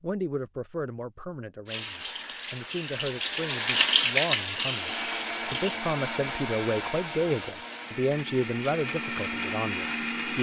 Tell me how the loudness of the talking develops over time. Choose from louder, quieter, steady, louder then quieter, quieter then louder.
louder.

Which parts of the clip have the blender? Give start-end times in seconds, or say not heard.
4.5-10.3.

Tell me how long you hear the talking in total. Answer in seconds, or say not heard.
10 s.